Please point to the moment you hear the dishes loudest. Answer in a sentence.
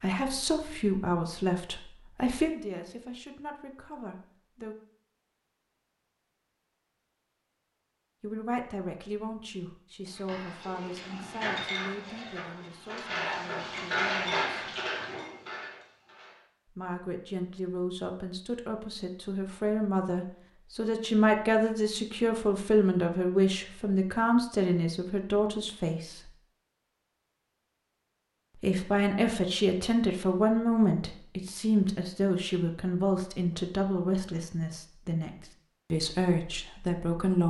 The volume of the dishes peaks at 14 seconds.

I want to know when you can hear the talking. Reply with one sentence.
You can hear the talking from 0.0 to 4.8 s, from 8.2 to 14.7 s, from 16.8 to 26.3 s, from 28.6 to 35.3 s and from 35.9 to 37.4 s.